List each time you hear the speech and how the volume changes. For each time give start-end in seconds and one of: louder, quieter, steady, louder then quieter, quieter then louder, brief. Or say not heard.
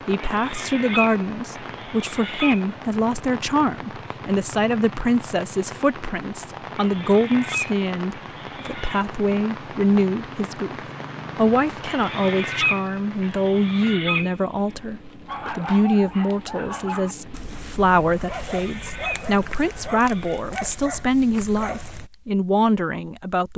0.1-23.5 steady.